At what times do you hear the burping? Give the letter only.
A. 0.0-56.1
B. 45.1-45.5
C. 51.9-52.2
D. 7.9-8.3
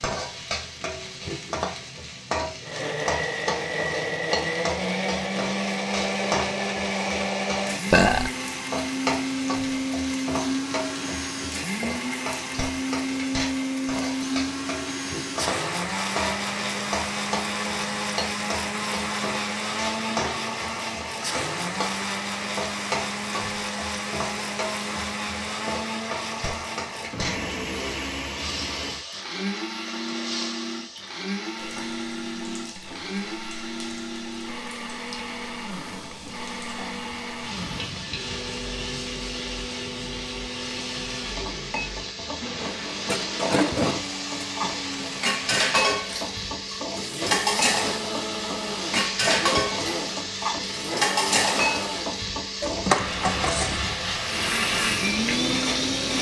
D.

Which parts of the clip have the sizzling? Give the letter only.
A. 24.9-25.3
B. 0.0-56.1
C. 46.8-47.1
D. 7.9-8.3
B.